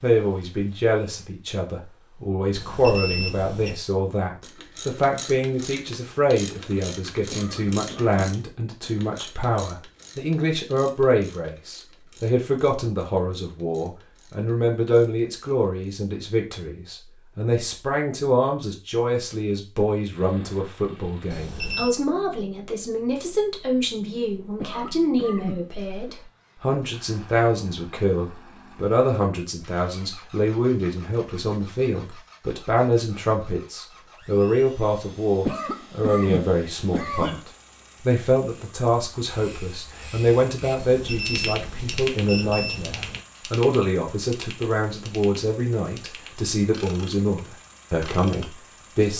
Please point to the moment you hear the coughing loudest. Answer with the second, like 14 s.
36 s.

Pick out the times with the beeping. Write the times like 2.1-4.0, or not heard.
2.5-3.8, 21.3-21.9, 40.8-43.2.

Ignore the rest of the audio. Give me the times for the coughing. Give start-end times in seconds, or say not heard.
7.3-8.2, 24.6-26.1, 35.5-37.4.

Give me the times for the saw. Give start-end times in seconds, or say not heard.
not heard.